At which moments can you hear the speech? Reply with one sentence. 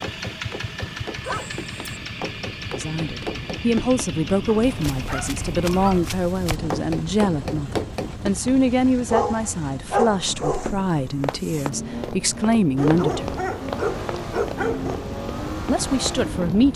The speech can be heard from 2.7 to 13.3 s and from 15.7 to 16.7 s.